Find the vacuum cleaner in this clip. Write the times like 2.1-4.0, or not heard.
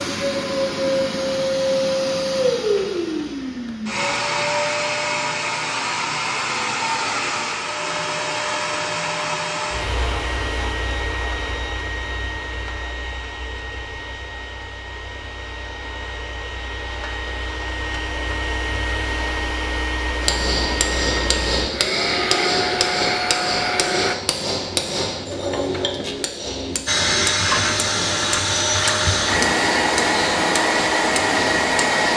0.0-24.1, 26.9-32.1.